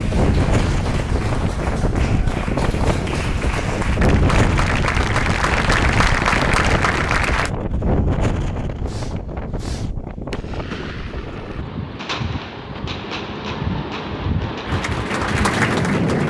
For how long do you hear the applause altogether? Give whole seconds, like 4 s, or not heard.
9 s.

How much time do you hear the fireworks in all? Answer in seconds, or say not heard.
6 s.